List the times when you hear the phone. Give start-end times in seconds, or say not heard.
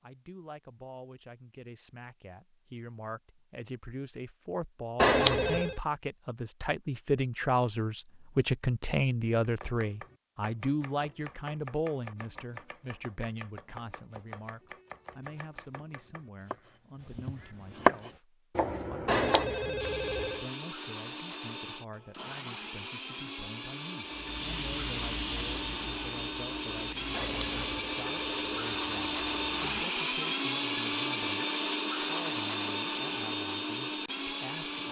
5.0-5.8, 19.1-20.4, 27.1-29.6.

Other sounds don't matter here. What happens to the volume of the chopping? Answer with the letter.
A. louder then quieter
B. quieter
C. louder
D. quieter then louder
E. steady
C.